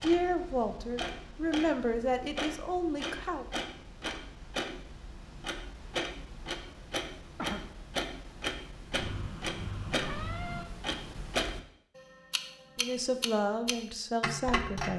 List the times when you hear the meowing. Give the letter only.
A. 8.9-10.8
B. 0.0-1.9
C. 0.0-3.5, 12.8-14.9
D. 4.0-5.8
A.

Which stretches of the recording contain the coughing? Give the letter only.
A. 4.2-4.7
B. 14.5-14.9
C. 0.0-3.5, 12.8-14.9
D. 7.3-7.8
D.